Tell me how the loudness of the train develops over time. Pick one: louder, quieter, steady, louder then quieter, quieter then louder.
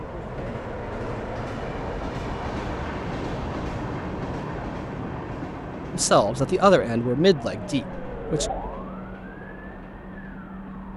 quieter.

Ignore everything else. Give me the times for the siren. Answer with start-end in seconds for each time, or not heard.
7.5-10.9.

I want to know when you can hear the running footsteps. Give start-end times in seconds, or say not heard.
not heard.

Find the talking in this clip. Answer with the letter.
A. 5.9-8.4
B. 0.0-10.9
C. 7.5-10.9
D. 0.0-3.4
A.